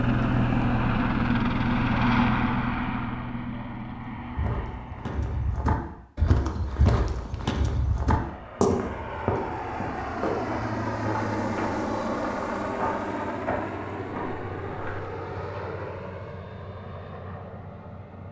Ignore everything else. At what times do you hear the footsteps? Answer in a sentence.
The footsteps can be heard from 4.2 to 15.6 s.